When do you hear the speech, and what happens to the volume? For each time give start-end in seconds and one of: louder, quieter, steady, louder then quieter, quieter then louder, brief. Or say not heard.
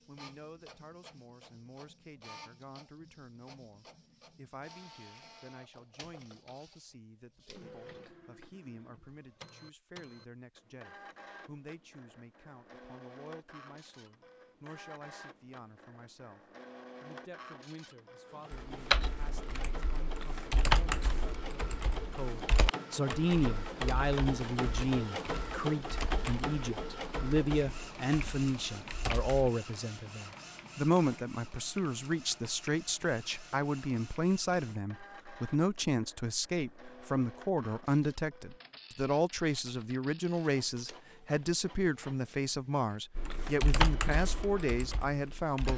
0.1-45.7 louder.